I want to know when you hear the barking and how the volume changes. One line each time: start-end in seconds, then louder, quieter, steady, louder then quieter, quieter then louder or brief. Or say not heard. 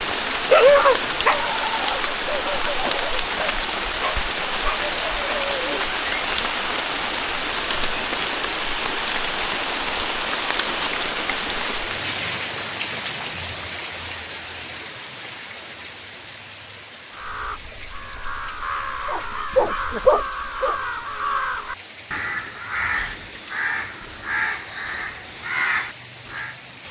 0.0-5.8 quieter
19.1-20.8 brief.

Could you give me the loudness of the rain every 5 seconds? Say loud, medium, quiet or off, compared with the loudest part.
loud, loud, loud, quiet, quiet, quiet.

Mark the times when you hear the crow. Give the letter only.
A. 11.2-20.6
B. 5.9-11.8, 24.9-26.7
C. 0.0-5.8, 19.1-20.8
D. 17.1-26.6
D.